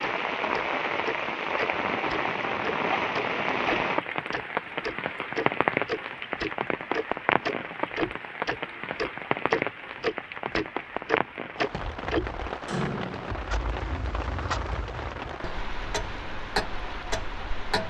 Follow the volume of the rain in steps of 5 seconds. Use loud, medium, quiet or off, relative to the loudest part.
loud, loud, medium, medium.